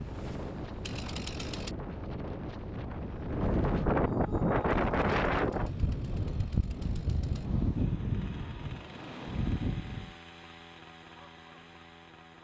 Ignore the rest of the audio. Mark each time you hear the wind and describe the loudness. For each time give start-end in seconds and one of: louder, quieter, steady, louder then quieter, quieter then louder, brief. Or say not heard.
0.0-10.2 louder then quieter.